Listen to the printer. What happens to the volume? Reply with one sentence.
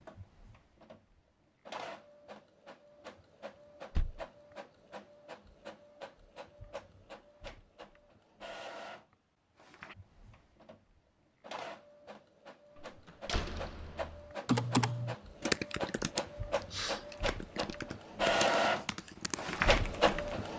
The volume of the printer goes up.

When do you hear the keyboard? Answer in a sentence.
The keyboard can be heard from 14.4 to 20.4 s.